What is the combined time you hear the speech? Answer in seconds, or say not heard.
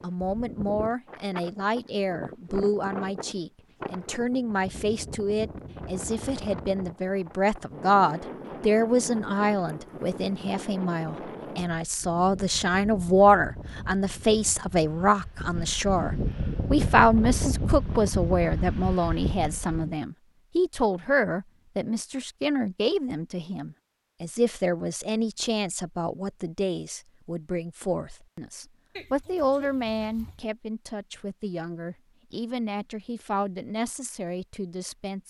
35 s.